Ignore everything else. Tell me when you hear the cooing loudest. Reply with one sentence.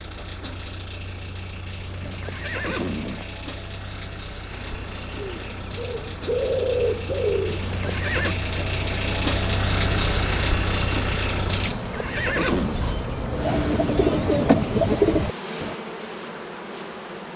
The loudest moment of the cooing is at 15 seconds.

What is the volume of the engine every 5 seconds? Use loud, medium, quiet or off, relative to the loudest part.
medium, loud, loud, off.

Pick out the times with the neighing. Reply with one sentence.
The neighing can be heard from 2.0 to 3.2 s, from 7.6 to 8.3 s and from 11.7 to 12.8 s.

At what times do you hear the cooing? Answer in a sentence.
The cooing can be heard from 5.2 to 8.0 s and from 13.3 to 15.8 s.